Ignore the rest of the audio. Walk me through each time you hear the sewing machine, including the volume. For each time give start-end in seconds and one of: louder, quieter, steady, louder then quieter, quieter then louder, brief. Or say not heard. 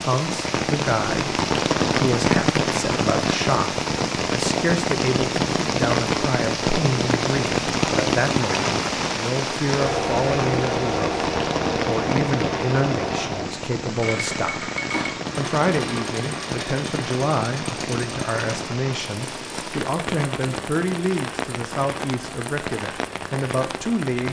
9.7-24.2 quieter.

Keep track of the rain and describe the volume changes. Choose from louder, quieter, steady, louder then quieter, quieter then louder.
quieter.